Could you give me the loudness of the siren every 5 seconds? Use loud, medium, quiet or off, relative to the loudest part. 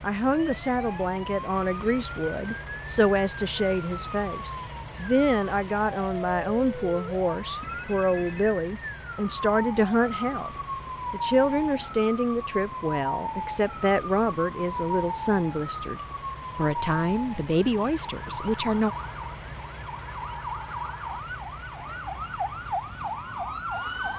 medium, loud, loud, loud, loud.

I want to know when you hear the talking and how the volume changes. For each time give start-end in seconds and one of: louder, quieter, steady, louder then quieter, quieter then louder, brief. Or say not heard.
0.0-10.5 steady
11.1-18.9 steady.